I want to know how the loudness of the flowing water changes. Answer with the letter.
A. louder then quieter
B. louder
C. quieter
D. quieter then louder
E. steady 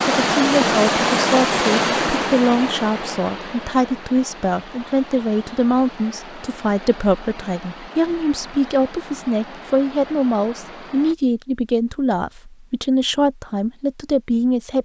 C.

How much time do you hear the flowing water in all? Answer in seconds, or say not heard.
11 s.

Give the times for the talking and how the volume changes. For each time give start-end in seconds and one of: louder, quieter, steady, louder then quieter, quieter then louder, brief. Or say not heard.
0.2-14.7 steady.